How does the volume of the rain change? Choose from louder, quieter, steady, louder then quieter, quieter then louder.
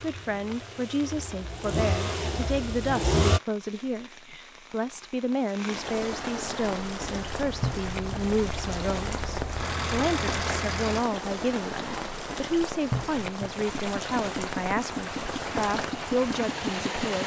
louder.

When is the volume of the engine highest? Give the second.
3 s.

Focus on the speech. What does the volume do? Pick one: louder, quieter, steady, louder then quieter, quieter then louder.
steady.